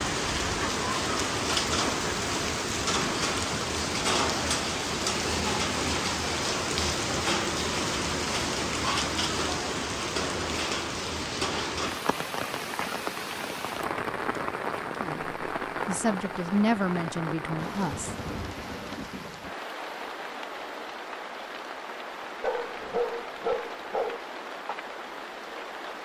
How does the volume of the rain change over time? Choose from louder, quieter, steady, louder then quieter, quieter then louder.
quieter.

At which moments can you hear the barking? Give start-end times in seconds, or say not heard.
22.4-24.2.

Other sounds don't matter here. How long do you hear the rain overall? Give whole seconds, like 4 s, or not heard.
26 s.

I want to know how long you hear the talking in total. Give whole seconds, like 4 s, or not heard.
3 s.